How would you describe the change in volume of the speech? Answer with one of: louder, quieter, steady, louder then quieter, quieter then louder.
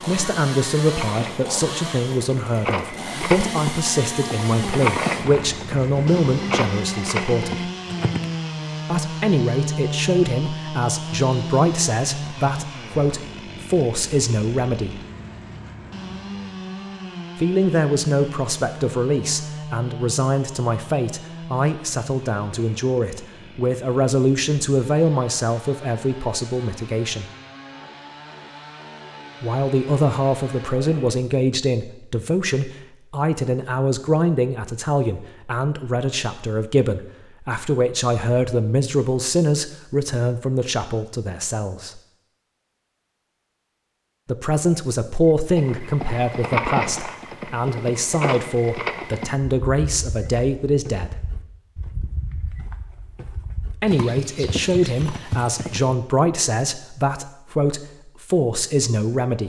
steady.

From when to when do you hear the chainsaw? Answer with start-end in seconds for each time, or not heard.
0.0-31.2.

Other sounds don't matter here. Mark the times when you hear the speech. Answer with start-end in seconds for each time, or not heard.
0.1-7.7, 8.8-15.0, 17.4-27.2, 29.4-42.0, 44.2-51.2, 53.7-59.4.